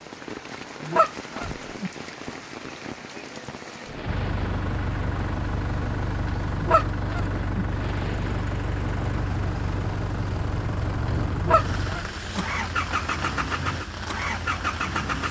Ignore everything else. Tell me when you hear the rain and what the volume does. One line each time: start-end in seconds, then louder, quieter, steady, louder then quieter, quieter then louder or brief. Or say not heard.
0.0-15.2 steady.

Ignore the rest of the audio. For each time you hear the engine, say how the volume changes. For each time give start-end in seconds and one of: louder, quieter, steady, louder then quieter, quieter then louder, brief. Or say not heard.
4.0-15.2 steady.